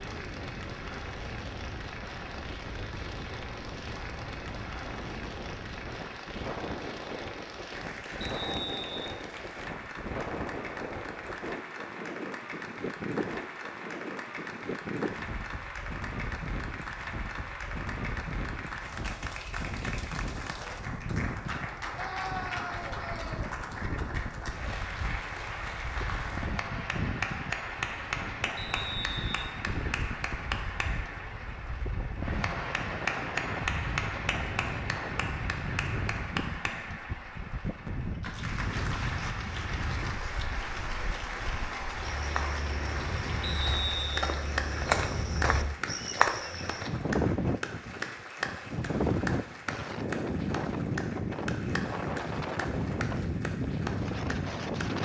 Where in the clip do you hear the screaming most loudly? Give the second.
22 s.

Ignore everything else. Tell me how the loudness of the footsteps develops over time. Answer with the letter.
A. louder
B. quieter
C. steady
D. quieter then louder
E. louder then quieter
A.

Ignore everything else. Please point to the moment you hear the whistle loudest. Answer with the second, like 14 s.
44 s.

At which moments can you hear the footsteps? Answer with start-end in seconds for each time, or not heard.
42.1-46.9.